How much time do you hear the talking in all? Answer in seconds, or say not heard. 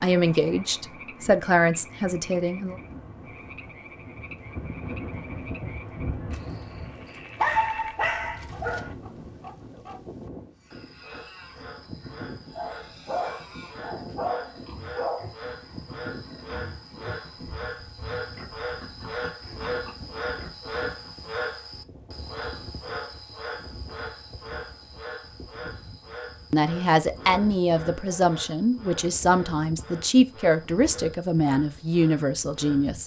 9 s.